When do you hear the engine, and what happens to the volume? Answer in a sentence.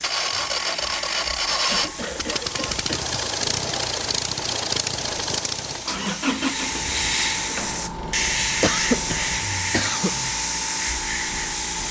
You can hear the engine from 0.0 to 10.3 s, getting quieter.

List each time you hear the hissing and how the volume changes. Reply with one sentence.
You can hear the hissing from 0.0 to 11.8 s, getting louder.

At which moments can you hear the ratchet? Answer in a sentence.
You can't hear the ratchet here.